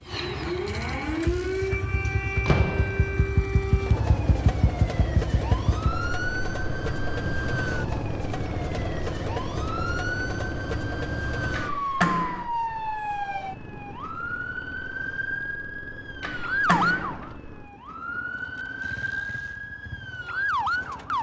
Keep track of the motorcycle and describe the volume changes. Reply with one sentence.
The loudness of the motorcycle goes down.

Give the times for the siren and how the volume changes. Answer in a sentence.
You can hear the siren from 0.0 to 21.1 s, at a steady volume.